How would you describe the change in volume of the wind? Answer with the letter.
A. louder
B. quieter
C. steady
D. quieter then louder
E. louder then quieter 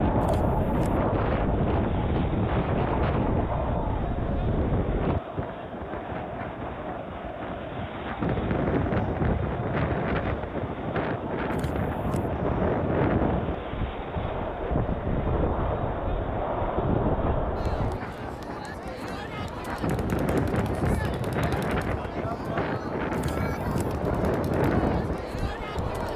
C.